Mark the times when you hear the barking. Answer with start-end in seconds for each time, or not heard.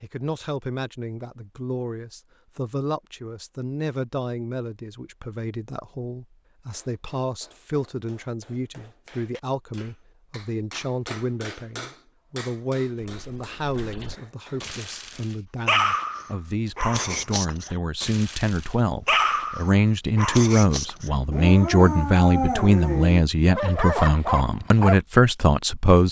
13.0-25.0.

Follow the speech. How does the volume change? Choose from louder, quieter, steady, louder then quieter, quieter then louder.
louder.